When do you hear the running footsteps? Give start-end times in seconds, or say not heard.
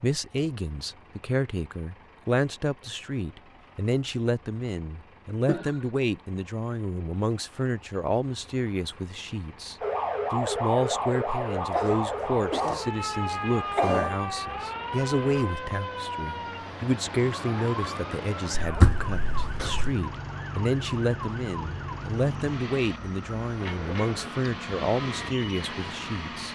not heard.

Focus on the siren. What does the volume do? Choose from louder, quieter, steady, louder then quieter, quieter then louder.
quieter.